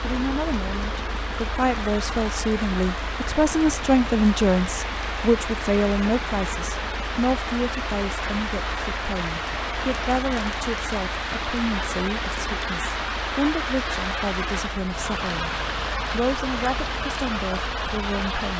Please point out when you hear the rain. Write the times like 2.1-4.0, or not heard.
0.0-18.5.